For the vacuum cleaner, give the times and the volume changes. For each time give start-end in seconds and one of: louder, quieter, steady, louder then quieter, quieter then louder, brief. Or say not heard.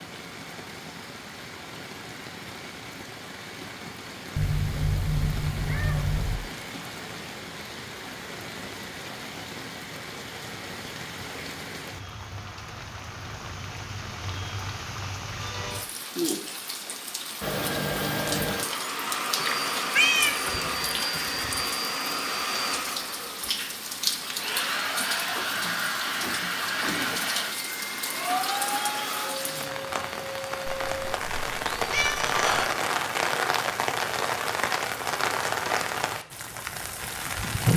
17.4-30.9 steady.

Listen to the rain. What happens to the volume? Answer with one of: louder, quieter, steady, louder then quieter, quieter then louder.
louder.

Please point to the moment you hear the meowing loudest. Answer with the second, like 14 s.
20 s.